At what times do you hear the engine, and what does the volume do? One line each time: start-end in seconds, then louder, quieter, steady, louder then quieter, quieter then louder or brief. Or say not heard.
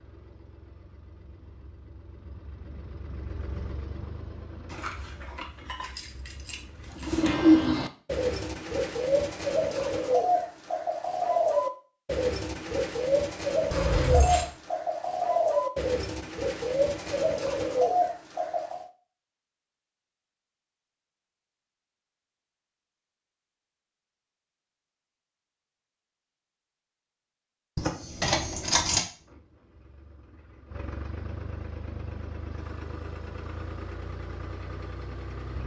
0.0-7.2 louder then quieter
29.1-35.6 louder.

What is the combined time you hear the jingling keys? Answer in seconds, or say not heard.
5 s.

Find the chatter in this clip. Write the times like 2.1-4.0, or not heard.
not heard.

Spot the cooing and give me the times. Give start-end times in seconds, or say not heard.
7.0-18.9.